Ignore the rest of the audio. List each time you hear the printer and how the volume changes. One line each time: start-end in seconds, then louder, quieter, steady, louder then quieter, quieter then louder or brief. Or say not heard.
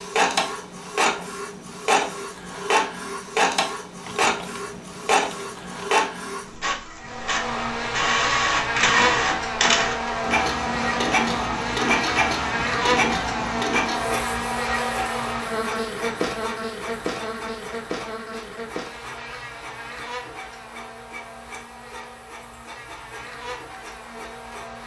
0.0-24.8 quieter.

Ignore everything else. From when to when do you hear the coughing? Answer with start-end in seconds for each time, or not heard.
not heard.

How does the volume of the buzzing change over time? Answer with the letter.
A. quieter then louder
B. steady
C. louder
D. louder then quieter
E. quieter
E.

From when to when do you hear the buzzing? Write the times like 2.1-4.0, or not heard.
7.0-24.8.